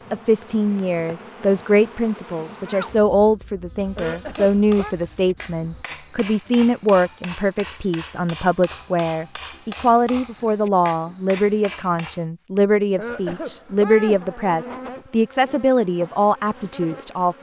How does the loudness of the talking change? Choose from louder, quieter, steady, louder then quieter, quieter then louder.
steady.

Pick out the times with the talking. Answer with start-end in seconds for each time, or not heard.
0.1-17.3.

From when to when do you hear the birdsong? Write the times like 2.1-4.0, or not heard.
not heard.